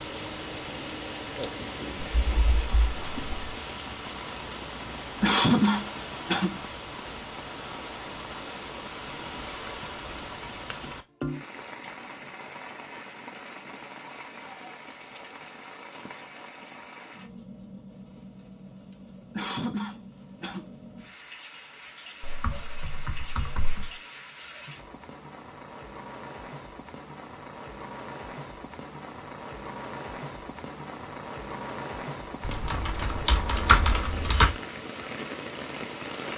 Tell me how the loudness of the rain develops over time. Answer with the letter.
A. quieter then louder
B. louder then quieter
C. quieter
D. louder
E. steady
A.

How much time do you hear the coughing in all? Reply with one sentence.
You can hear the coughing for 3 seconds altogether.